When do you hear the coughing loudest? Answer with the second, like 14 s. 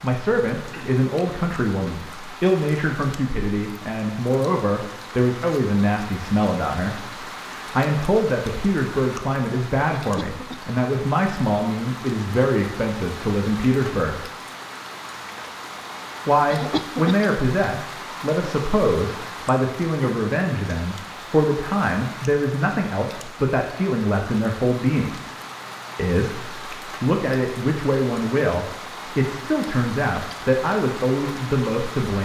17 s.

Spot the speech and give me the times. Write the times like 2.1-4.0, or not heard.
0.0-14.2, 16.2-25.2, 25.9-32.2.